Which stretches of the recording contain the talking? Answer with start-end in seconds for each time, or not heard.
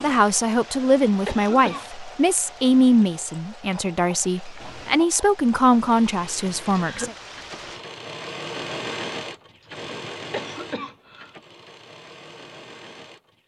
0.0-7.2.